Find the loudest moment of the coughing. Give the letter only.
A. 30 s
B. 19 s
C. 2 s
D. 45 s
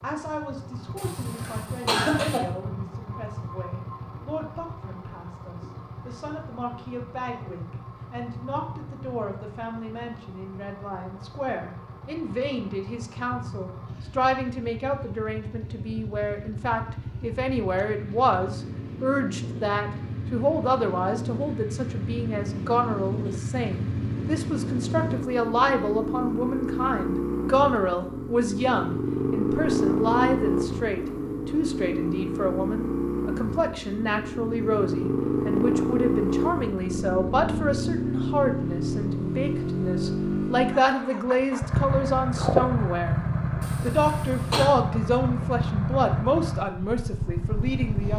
C.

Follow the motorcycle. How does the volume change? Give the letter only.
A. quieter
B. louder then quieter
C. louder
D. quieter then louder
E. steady
C.